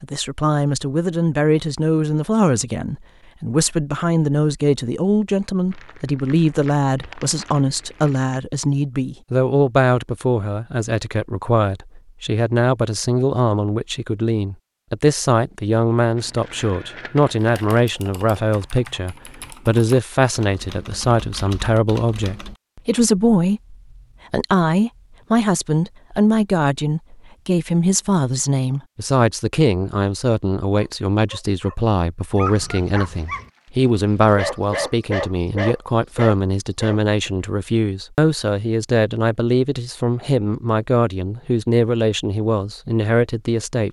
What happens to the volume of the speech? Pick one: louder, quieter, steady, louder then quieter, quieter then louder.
steady.